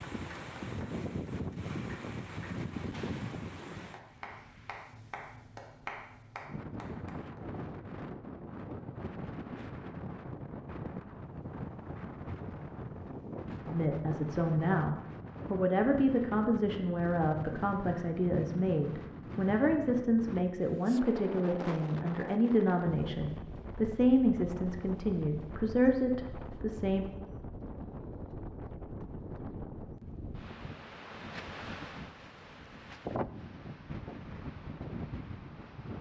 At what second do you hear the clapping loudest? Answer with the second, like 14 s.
6 s.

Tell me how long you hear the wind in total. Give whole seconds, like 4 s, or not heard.
36 s.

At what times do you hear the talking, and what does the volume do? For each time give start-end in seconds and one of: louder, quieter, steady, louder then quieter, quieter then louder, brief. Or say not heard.
13.7-27.1 steady.